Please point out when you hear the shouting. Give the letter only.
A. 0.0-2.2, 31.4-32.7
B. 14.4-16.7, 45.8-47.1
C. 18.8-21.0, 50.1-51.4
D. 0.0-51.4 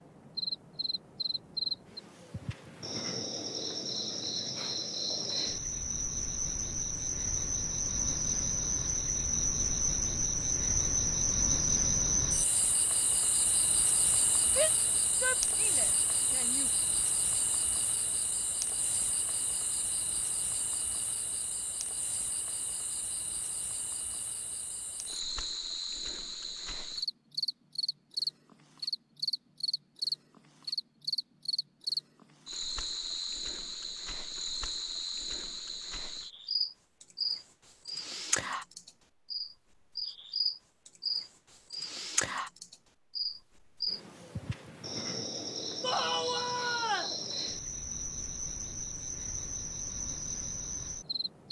B.